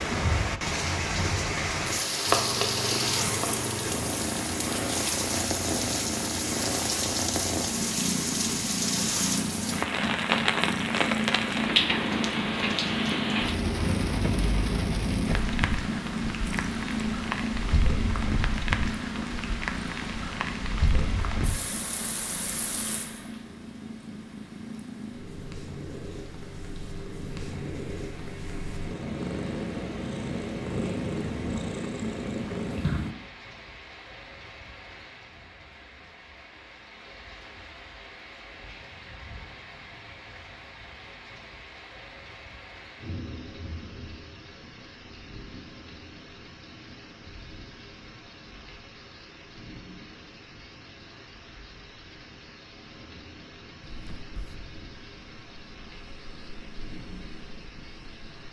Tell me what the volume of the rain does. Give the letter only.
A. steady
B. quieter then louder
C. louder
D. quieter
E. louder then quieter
D.